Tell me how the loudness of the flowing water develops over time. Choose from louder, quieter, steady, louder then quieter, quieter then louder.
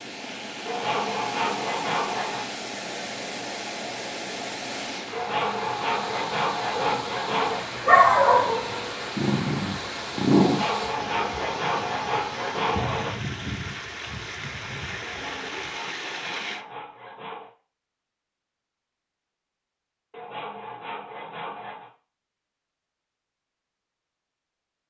steady.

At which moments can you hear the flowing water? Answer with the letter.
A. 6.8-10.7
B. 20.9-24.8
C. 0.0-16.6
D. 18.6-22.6
C.